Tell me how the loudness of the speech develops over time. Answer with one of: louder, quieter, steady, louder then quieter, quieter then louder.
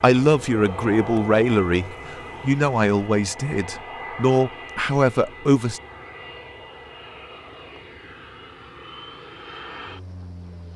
steady.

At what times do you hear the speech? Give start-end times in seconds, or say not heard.
0.0-5.8.